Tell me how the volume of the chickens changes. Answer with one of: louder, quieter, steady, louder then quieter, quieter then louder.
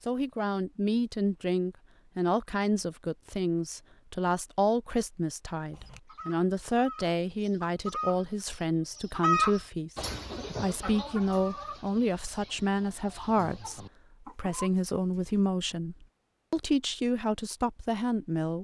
louder then quieter.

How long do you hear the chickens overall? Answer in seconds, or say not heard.
10 s.